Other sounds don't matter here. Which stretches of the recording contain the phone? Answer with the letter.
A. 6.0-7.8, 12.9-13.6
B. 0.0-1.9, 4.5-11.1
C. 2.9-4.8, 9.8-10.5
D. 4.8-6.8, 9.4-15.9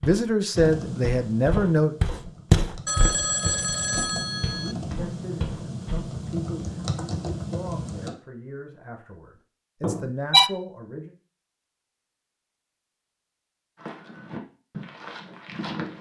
C.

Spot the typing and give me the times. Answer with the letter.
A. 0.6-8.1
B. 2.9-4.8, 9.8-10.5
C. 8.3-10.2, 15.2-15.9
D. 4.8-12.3
A.